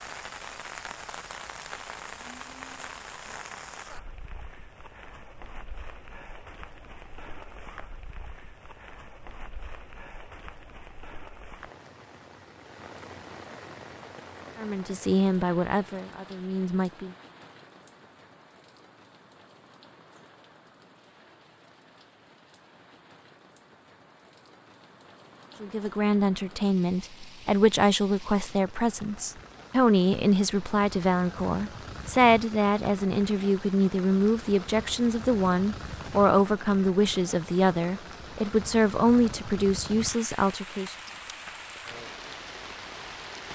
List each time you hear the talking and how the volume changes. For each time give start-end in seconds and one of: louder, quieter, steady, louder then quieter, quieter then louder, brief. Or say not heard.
14.6-17.1 brief
25.6-41.0 steady.